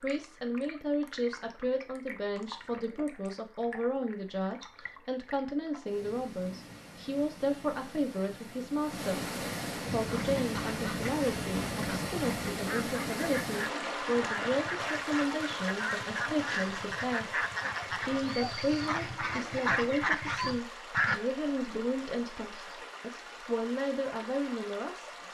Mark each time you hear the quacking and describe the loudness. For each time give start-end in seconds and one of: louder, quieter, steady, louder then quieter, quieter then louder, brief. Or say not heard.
9.9-21.2 louder.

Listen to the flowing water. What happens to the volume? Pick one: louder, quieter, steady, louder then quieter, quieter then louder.
louder then quieter.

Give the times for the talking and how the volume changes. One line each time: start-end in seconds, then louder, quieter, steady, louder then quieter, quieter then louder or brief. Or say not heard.
0.0-25.1 steady.